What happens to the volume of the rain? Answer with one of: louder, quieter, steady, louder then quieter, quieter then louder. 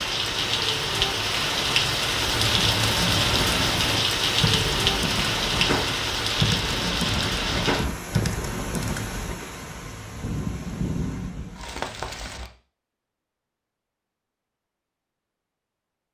quieter.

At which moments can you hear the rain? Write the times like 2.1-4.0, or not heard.
0.0-12.5.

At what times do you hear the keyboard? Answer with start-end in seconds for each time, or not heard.
2.3-9.4.